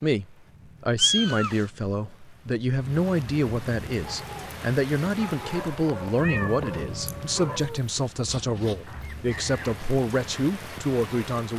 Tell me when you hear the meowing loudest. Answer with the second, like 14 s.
1 s.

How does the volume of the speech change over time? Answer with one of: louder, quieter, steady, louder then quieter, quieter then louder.
steady.